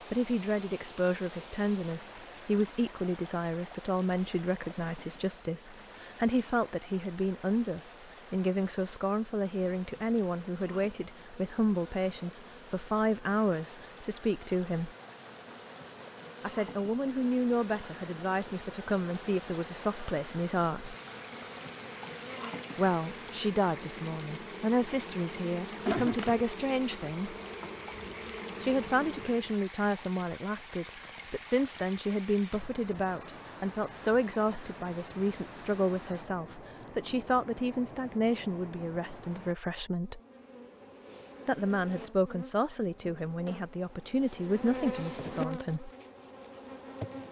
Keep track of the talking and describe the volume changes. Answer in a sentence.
The loudness of the talking stays about the same.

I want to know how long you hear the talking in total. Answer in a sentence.
You can hear the talking for 40 seconds altogether.